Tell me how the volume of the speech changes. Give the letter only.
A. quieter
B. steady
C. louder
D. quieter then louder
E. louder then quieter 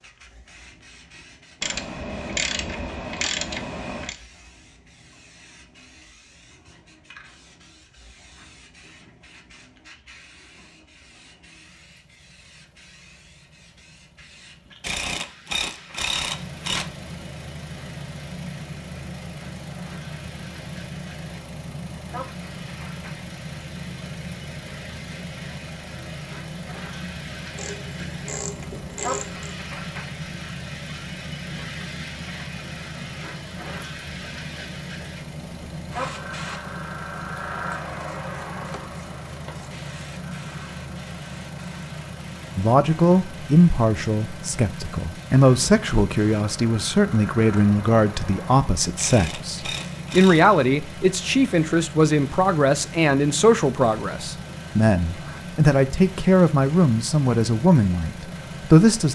B.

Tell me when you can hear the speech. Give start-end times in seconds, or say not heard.
42.5-59.1.